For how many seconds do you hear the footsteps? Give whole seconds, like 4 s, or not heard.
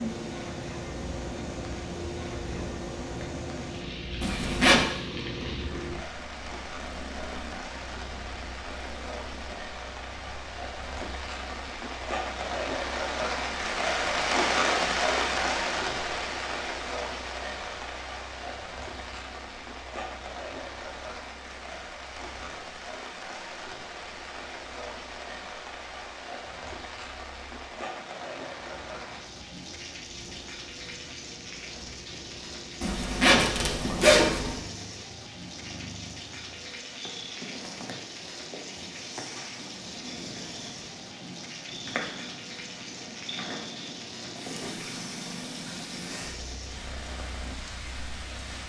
not heard.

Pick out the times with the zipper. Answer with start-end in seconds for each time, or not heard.
4.2-4.8, 32.8-34.5.